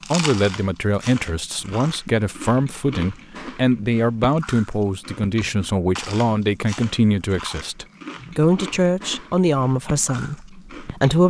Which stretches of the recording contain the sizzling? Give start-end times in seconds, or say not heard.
not heard.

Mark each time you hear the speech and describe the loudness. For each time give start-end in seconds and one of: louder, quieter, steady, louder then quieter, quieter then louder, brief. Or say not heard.
0.1-11.2 steady.